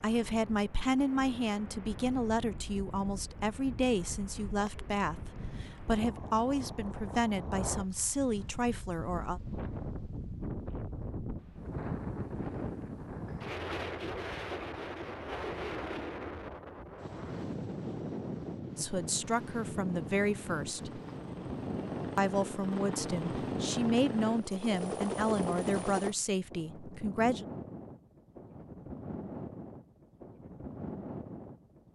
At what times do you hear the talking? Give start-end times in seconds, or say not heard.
0.0-9.4, 18.8-21.0, 22.1-27.4.